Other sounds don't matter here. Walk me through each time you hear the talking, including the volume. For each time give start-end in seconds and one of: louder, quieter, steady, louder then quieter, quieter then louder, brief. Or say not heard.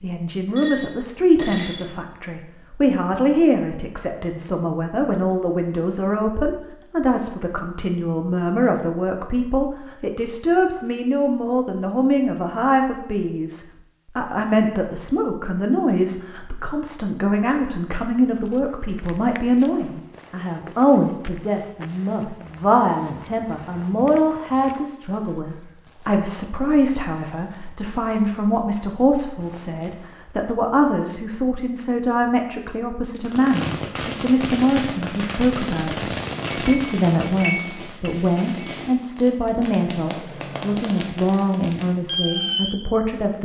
0.0-43.4 steady.